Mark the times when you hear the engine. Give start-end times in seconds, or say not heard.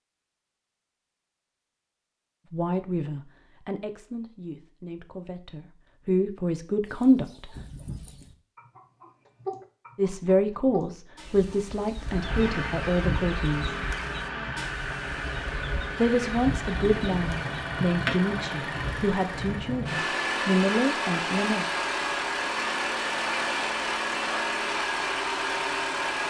11.9-26.2.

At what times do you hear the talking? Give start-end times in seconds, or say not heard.
2.5-7.5, 9.9-13.8, 15.9-21.6.